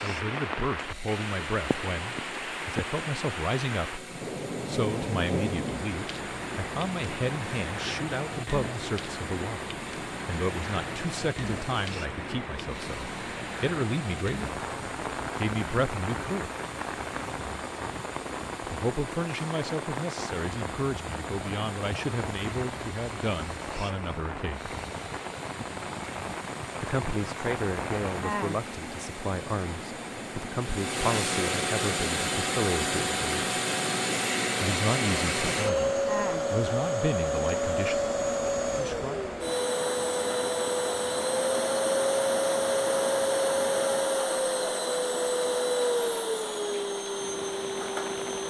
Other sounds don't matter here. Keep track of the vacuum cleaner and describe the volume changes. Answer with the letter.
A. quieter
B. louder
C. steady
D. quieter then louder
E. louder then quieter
B.